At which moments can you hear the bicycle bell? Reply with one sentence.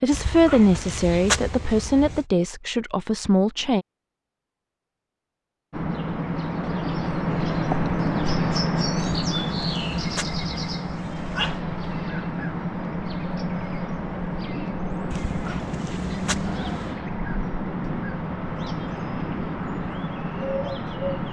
The bicycle bell can't be heard in this clip.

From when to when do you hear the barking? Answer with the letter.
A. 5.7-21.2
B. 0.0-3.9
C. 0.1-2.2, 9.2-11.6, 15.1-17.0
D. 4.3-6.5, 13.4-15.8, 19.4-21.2
C.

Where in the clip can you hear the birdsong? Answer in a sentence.
You can hear the birdsong from 5.7 to 21.2 s.